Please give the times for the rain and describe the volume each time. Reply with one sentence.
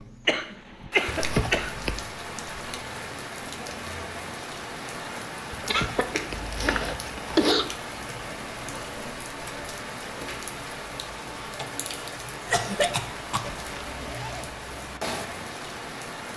The rain can be heard from 0.0 to 16.3 s, at a steady volume.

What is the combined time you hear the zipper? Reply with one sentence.
The zipper can be heard for 4 seconds in total.